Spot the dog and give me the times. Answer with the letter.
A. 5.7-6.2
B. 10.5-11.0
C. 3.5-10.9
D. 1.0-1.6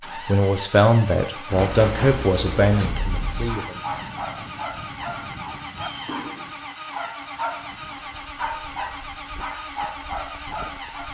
C.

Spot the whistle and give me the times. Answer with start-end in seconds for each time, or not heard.
5.7-6.2.